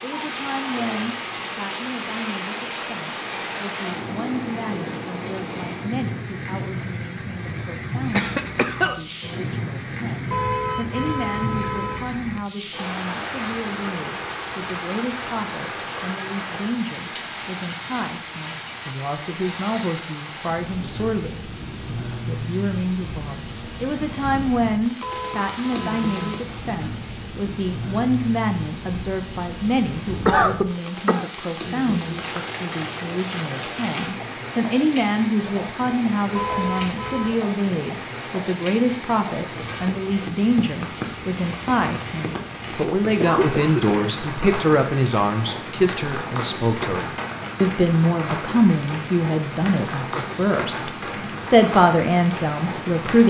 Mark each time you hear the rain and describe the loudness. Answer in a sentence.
You can hear the rain from 0.0 to 53.2 s, at a steady volume.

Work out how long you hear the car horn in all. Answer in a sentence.
You can hear the car horn for 4 seconds altogether.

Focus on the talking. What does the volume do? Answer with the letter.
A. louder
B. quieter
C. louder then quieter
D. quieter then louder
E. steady
A.